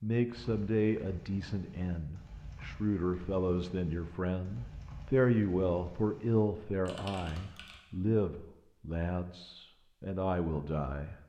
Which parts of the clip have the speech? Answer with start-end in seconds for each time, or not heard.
0.0-11.2.